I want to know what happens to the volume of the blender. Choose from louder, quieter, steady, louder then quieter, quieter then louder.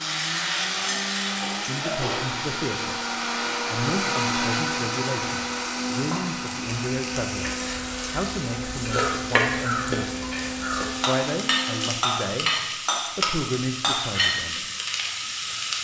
louder then quieter.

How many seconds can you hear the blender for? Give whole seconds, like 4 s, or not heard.
12 s.